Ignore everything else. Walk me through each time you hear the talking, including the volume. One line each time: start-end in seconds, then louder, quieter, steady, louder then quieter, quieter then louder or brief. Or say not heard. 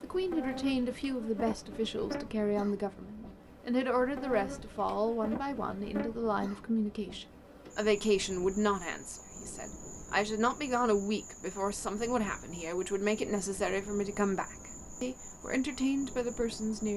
0.0-16.9 steady.